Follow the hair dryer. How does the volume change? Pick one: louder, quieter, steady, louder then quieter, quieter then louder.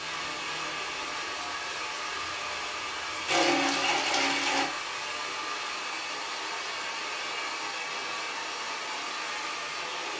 steady.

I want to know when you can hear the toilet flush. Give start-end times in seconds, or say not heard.
3.2-4.7.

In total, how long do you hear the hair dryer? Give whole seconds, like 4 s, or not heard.
10 s.